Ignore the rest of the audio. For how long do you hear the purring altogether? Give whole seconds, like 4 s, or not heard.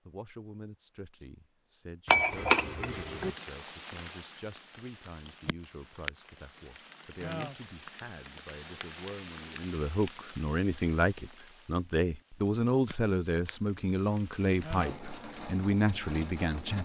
not heard.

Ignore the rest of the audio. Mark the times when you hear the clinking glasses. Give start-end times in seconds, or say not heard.
2.0-3.3.